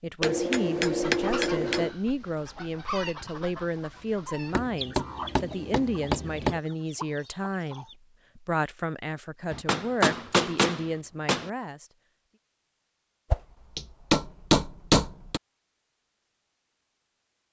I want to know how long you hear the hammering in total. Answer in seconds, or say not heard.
8 s.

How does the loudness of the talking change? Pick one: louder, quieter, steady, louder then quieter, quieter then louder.
steady.